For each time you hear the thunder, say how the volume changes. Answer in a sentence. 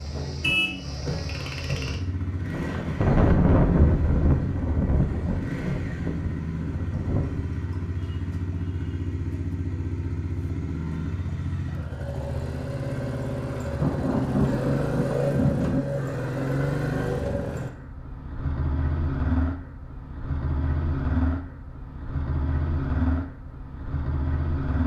The thunder can be heard from 2.5 to 7.5 s, getting quieter; and briefly from 13.8 to 15.8 s.